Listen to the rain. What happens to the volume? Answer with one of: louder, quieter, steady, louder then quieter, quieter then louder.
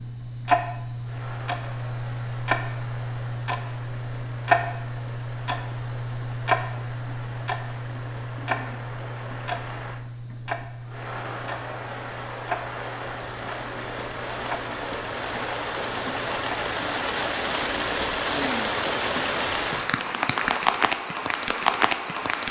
louder.